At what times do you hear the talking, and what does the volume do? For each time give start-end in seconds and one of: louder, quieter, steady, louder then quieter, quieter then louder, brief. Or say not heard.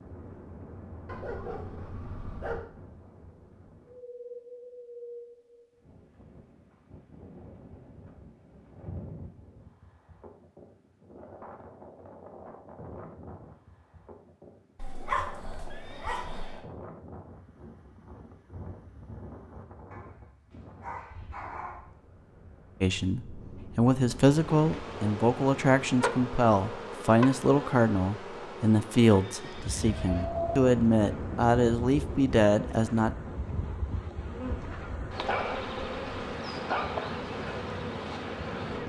22.8-33.1 steady.